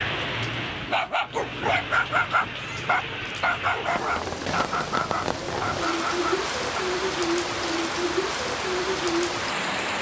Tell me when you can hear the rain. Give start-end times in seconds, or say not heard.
0.0-9.9.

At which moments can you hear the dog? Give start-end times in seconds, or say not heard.
0.3-6.8.